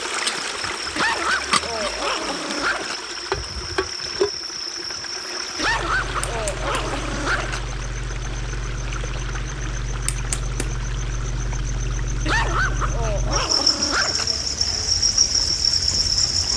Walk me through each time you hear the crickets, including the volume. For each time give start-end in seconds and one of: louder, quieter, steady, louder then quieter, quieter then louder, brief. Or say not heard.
0.0-16.5 louder.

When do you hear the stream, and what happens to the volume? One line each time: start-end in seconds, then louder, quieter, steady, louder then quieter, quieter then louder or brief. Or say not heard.
0.0-16.5 quieter.